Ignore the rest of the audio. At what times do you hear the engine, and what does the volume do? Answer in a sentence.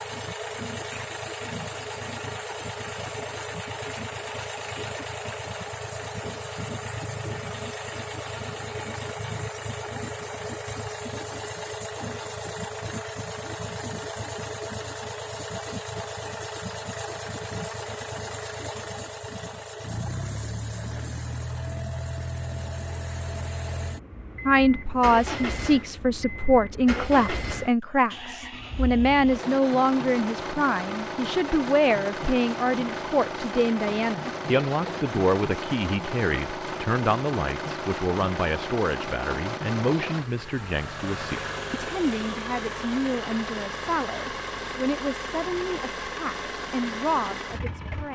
The engine can be heard from 0.0 to 48.1 s, at a steady volume.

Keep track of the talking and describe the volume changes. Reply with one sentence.
The loudness of the talking goes down.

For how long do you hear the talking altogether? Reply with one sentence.
You can hear the talking for 24 seconds altogether.